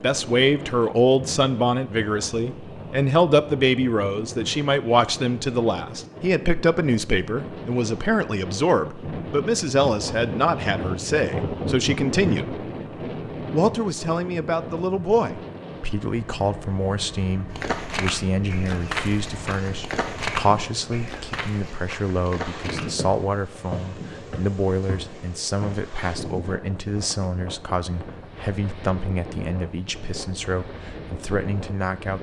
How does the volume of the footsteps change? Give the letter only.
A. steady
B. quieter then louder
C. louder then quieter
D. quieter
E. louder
D.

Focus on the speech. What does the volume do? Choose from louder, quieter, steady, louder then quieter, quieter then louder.
quieter.